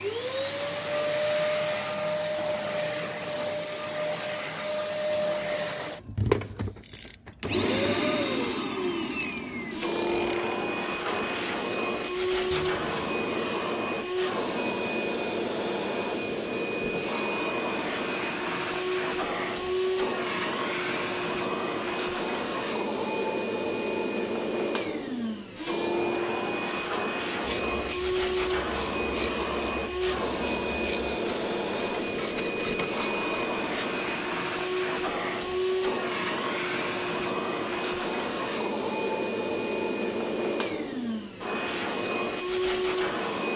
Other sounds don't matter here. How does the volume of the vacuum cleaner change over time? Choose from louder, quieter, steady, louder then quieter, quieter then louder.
steady.